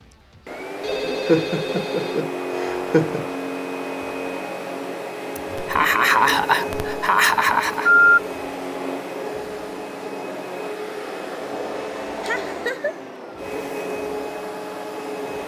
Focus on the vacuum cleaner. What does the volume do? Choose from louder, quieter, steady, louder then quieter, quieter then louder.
steady.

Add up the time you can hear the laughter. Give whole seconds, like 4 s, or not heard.
5 s.